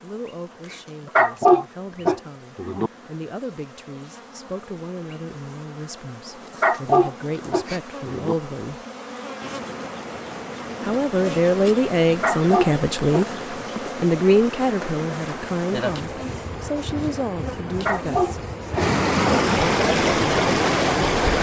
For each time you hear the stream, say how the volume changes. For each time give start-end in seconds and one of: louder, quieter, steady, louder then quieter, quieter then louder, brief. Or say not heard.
9.4-21.3 louder.